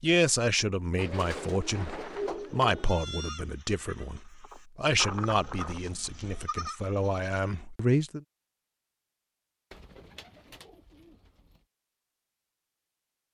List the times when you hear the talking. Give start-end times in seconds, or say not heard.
0.0-8.2.